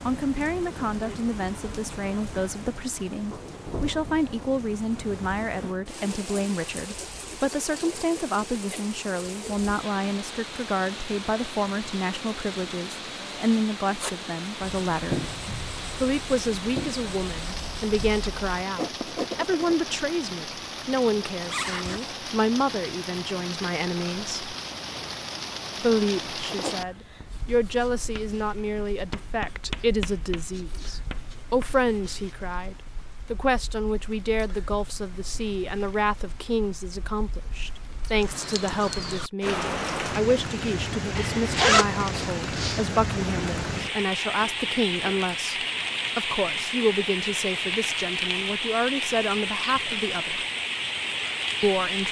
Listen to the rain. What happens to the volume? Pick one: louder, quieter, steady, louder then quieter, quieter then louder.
louder.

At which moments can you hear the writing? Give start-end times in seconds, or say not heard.
13.9-19.8, 26.4-32.4.